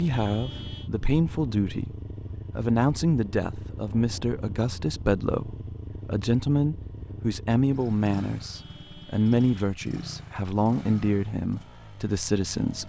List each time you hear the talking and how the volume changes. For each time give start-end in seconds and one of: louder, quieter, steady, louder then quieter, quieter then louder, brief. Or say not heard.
0.0-12.8 steady.